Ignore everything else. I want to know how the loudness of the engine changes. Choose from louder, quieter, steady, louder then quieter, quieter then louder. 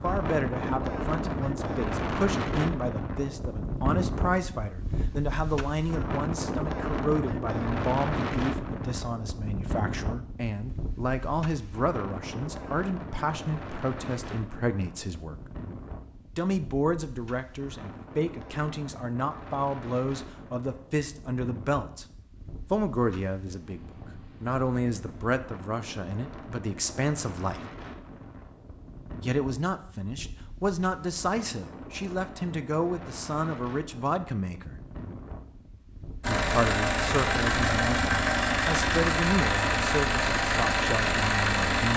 steady.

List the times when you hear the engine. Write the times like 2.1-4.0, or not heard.
36.2-41.9.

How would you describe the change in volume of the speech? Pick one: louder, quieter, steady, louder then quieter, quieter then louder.
steady.